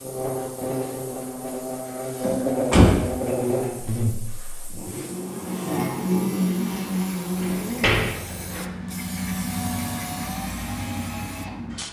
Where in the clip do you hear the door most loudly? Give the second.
3 s.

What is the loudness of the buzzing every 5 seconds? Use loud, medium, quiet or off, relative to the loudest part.
loud, loud, off.